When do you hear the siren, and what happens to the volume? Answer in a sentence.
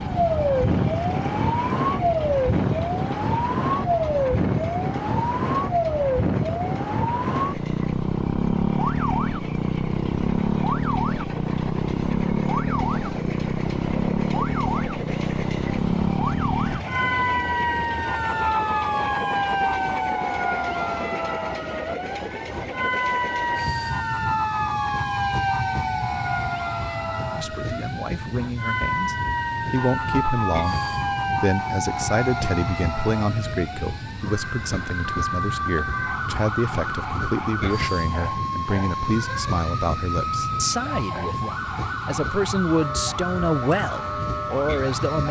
You can hear the siren from 0.0 to 45.2 s, getting quieter.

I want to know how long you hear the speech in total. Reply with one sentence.
You can hear the speech for 17 seconds altogether.